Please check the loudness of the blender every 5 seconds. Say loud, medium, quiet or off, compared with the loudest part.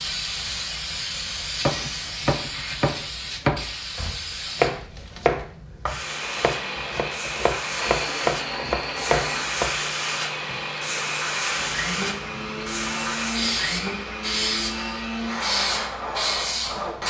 off, loud, loud, loud.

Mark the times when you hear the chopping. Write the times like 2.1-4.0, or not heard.
1.6-9.8.